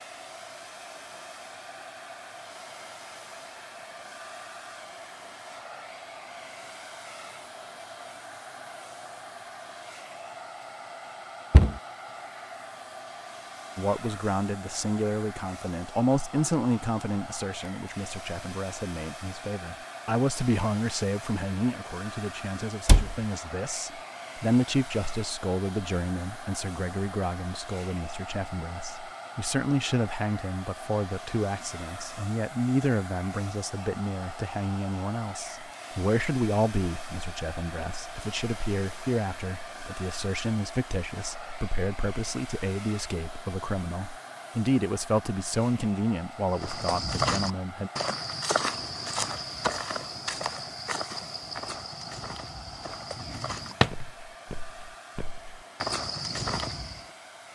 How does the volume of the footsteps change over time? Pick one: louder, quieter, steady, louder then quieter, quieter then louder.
quieter then louder.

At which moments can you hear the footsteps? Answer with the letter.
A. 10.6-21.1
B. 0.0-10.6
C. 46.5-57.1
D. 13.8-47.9
C.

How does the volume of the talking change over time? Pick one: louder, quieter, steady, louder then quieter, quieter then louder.
steady.